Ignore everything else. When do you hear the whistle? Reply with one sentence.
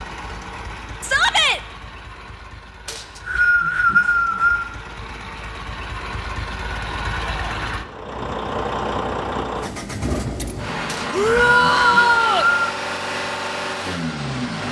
The whistle can be heard from 2.9 to 4.7 s and from 10.8 to 12.7 s.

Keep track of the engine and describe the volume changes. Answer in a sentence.
The loudness of the engine goes up.